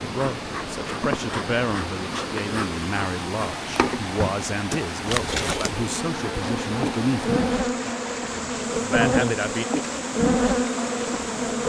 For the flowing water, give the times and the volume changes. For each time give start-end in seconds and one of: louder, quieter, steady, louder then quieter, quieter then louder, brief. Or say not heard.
0.0-11.6 steady.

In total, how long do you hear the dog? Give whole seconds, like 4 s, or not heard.
not heard.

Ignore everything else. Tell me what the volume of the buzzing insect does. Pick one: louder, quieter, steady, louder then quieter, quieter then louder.
louder.